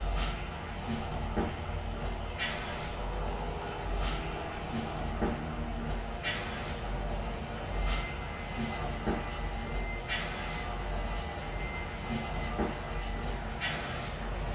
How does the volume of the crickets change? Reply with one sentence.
The loudness of the crickets stays about the same.